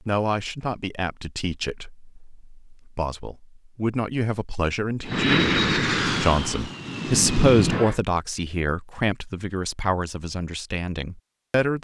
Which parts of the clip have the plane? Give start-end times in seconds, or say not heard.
5.0-8.0.